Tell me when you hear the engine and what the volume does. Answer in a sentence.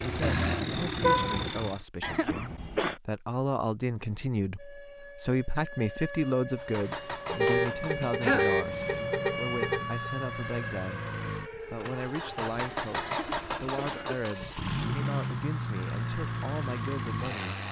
You can hear the engine briefly from 0.0 to 1.9 s; and from 6.5 to 17.6 s, getting louder.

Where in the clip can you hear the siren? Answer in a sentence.
You can hear the siren from 4.5 to 14.5 s.